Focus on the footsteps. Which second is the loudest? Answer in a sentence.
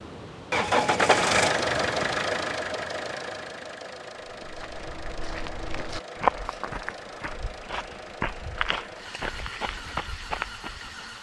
The loudest moment of the footsteps is at 6 seconds.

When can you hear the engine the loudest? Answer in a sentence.
The loudest moment of the engine is at 1 second.